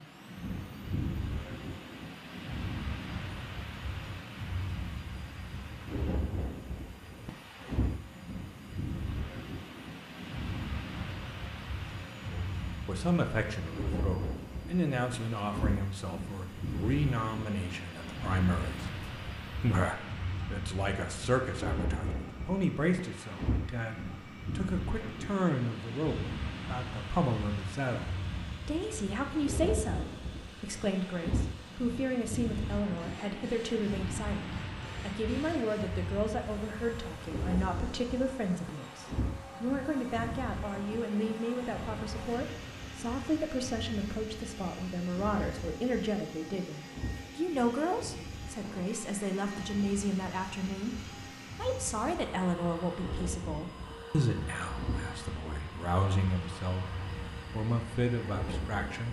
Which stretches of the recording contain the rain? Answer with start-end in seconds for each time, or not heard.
0.0-59.0.